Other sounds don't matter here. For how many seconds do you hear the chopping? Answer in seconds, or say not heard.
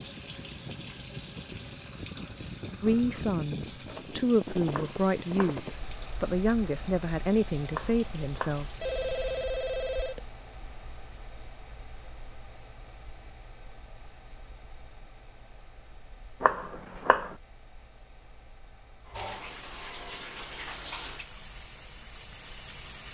3 s.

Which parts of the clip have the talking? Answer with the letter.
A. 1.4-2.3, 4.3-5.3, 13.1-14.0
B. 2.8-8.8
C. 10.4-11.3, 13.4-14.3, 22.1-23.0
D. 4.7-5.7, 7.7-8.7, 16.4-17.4
B.